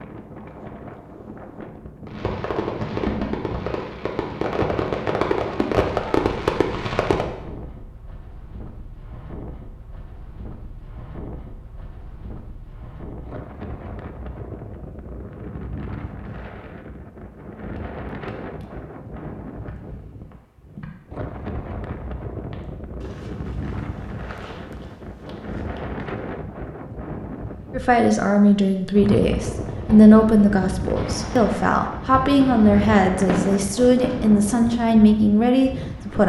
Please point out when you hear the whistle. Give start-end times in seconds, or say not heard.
not heard.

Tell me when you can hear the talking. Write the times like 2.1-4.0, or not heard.
27.7-36.2.